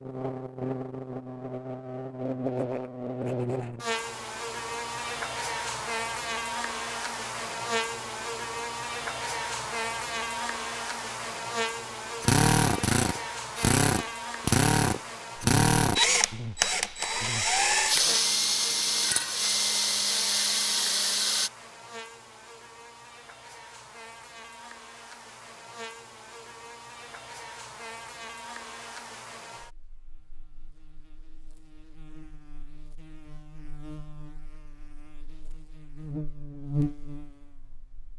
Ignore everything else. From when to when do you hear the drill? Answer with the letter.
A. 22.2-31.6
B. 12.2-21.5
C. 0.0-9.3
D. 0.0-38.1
B.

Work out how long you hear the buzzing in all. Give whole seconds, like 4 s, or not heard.
38 s.